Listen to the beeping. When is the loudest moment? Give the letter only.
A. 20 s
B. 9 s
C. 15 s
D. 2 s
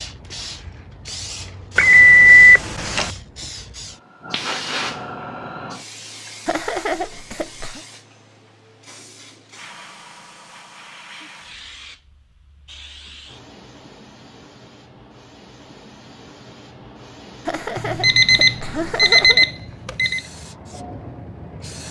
D.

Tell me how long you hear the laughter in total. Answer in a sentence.
The laughter can be heard for 3 seconds in total.